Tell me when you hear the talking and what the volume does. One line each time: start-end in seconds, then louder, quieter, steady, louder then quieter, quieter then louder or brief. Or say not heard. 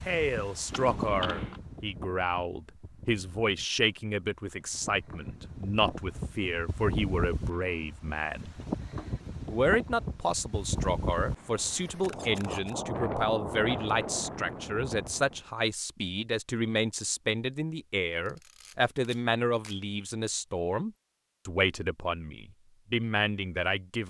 0.1-8.6 steady
9.5-24.0 steady.